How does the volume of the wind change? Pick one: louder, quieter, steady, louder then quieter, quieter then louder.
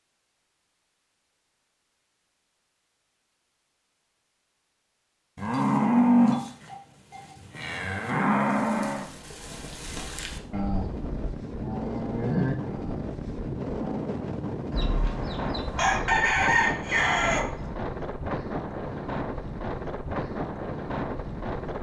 steady.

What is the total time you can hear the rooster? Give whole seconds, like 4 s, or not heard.
3 s.